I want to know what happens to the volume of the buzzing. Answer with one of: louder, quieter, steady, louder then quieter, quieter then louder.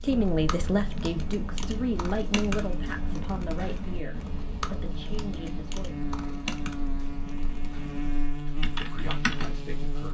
louder.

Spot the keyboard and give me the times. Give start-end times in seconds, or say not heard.
0.0-9.9.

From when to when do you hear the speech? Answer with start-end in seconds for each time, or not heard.
0.0-6.0, 8.2-10.0.